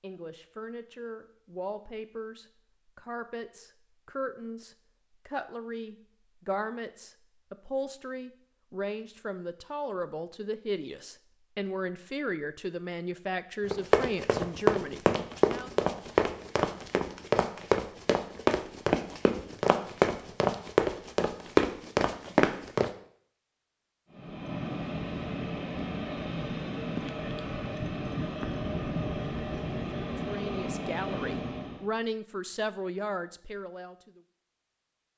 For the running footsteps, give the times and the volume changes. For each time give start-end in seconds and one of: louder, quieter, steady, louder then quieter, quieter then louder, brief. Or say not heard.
13.7-22.9 steady.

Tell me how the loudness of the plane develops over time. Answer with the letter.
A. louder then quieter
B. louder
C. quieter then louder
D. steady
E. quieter
D.